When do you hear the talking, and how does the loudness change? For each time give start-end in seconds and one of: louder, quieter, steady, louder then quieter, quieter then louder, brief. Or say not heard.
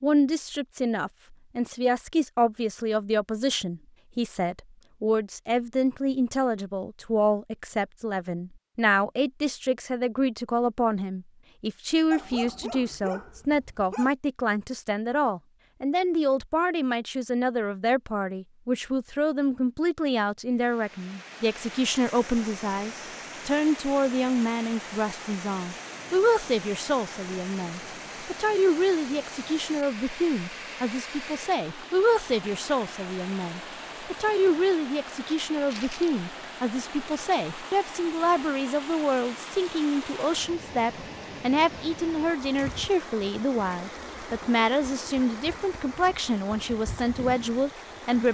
0.0-48.2 steady.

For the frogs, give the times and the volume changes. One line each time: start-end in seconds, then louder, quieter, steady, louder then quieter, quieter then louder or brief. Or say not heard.
not heard.